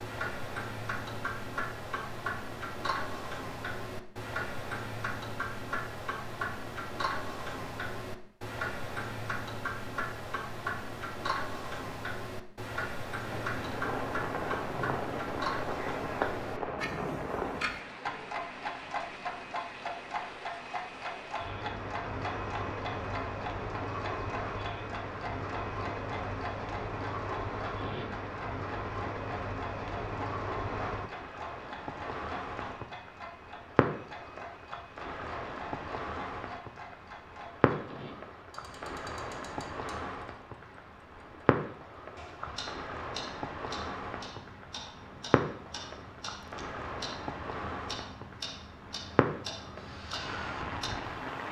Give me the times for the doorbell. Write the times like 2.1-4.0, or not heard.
not heard.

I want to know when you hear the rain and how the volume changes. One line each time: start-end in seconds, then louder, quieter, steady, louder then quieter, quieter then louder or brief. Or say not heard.
13.2-51.4 steady.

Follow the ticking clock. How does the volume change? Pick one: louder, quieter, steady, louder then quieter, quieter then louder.
quieter.